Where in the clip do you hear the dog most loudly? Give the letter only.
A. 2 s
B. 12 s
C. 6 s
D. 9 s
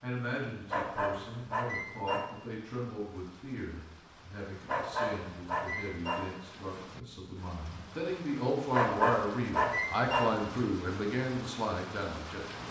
D.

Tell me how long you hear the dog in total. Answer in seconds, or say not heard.
5 s.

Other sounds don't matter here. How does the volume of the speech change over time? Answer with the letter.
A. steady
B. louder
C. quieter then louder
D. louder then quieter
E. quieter
B.